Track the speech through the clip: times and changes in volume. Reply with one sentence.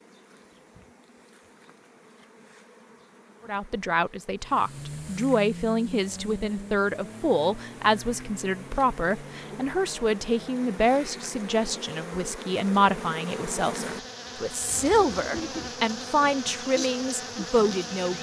The speech can be heard from 3.5 to 18.1 s, at a steady volume.